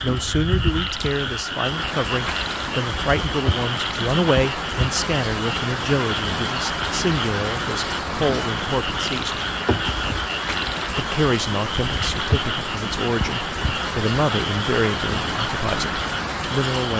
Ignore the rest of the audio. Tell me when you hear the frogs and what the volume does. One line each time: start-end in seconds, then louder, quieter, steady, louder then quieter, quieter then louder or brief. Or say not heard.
0.0-16.9 steady.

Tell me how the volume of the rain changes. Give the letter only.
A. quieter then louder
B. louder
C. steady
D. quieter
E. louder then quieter
C.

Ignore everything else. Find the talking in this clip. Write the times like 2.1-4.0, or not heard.
0.0-9.4, 10.9-16.9.